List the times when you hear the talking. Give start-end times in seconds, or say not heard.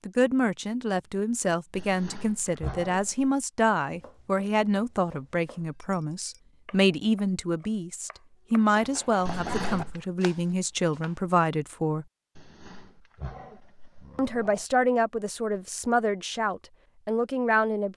0.1-12.1, 14.2-17.9.